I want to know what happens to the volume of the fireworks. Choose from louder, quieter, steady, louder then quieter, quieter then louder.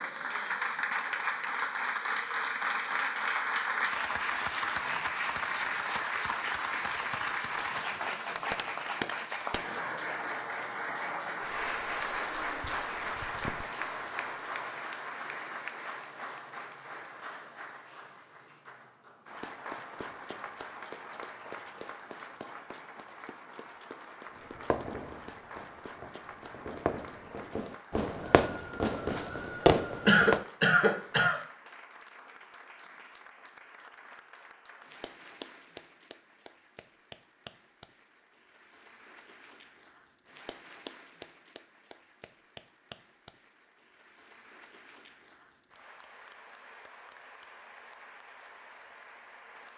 louder.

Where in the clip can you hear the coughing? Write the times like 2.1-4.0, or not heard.
30.1-31.4.